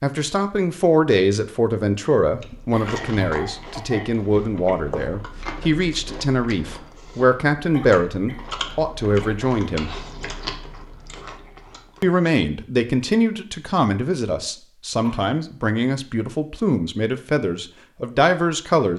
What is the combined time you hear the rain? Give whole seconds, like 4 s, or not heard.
not heard.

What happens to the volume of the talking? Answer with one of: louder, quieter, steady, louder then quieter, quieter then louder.
steady.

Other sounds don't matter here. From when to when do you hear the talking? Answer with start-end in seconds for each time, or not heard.
0.0-9.9, 12.0-18.9.